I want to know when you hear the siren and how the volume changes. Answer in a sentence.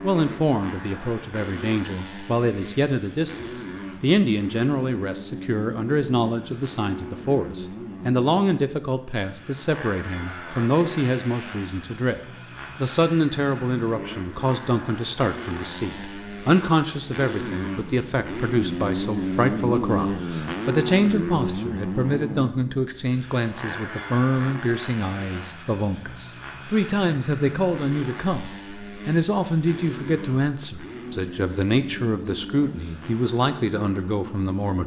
The siren can't be heard in this clip.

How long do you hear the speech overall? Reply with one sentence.
The speech can be heard for 35 seconds in total.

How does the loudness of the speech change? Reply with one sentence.
The loudness of the speech stays about the same.